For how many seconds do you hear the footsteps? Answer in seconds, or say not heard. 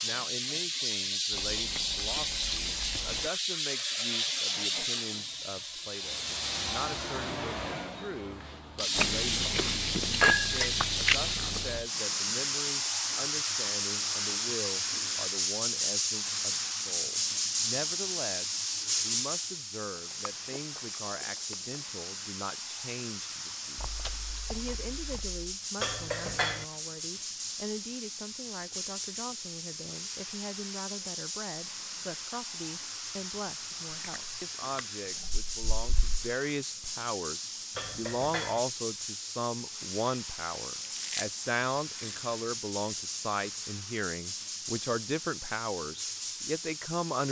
not heard.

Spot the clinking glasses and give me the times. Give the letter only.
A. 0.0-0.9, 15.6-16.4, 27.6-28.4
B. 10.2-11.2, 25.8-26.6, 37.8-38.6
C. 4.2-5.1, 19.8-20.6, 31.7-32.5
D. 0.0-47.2
B.